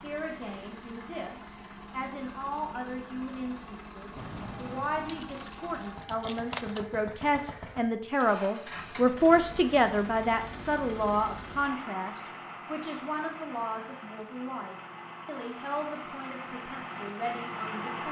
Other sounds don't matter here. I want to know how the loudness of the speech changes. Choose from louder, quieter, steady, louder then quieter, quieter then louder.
louder then quieter.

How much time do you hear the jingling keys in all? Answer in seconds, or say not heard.
3 s.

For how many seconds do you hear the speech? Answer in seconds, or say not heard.
18 s.